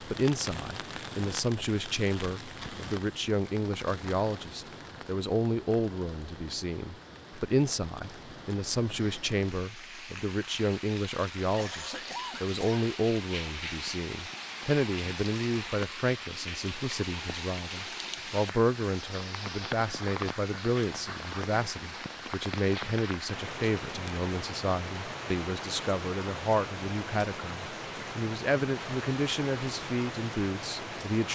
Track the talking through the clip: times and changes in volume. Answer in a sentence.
You can hear the talking from 0.0 to 31.3 s, at a steady volume.